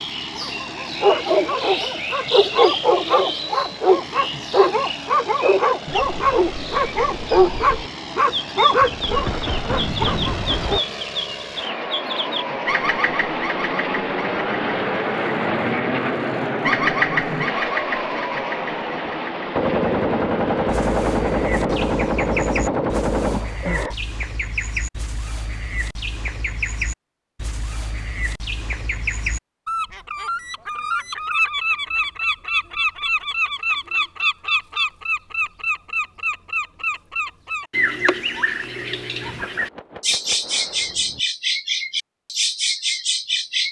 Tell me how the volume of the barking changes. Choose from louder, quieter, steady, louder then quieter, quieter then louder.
steady.